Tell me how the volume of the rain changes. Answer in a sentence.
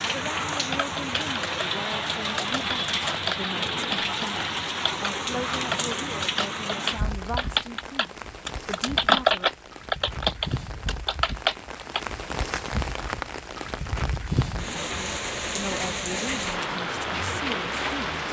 The volume of the rain goes down, then up.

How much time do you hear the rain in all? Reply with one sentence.
You can hear the rain for 18 seconds altogether.